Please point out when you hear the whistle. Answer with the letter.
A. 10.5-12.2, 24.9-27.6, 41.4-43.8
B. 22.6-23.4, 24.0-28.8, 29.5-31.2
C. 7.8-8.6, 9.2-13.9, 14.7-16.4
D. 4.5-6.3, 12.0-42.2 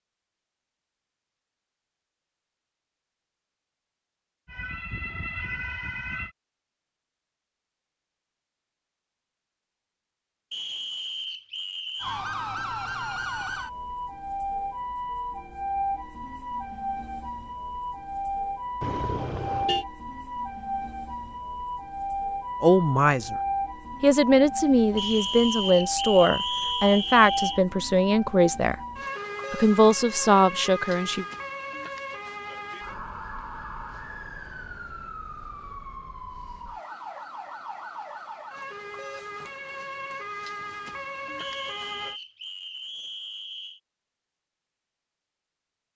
A.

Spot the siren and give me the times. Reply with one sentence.
You can hear the siren from 4.5 to 6.3 s and from 12.0 to 42.2 s.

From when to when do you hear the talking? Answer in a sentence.
You can hear the talking from 22.6 to 23.4 s, from 24.0 to 28.8 s and from 29.5 to 31.2 s.